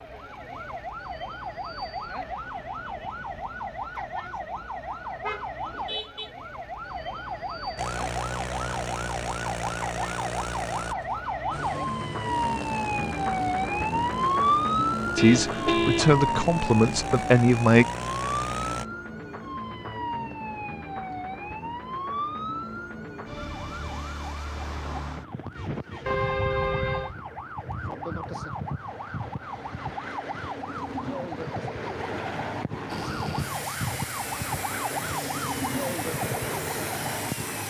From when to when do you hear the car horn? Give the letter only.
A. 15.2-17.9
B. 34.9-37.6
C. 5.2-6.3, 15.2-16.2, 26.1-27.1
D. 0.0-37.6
C.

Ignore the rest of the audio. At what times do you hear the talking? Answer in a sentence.
The talking can be heard from 15.2 to 17.9 s.